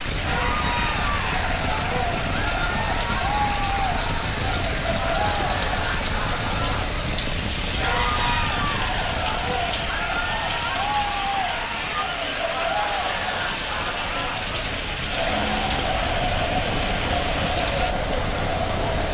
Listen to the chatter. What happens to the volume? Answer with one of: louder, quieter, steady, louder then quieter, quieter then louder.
steady.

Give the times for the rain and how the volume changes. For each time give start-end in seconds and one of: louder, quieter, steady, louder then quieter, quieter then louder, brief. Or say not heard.
0.0-19.0 steady.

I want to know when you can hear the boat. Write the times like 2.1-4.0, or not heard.
0.0-19.0.